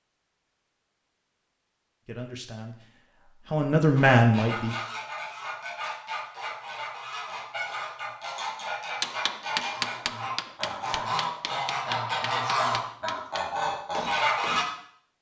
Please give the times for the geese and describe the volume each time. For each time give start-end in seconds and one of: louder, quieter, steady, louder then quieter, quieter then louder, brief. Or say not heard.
4.0-14.7 louder.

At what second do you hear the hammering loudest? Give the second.
10 s.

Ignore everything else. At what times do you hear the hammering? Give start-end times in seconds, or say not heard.
9.0-14.8.